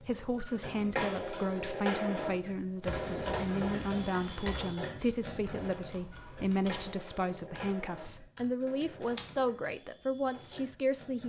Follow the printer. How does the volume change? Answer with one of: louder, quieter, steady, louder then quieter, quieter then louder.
quieter.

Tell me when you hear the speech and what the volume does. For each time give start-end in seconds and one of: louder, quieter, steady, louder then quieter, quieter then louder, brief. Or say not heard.
0.0-11.2 steady.